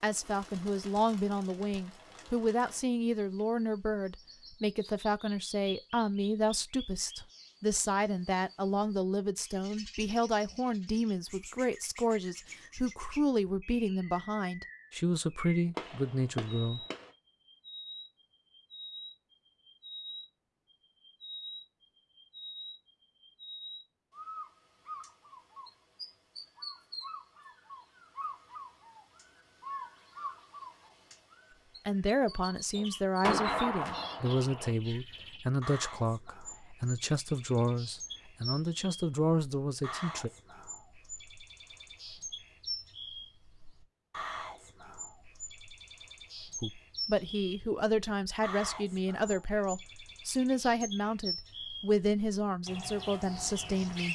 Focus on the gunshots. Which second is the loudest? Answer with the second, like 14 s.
33 s.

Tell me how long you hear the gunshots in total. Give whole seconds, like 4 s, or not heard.
3 s.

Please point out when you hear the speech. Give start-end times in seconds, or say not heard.
0.0-16.8, 31.9-40.3, 46.6-54.0.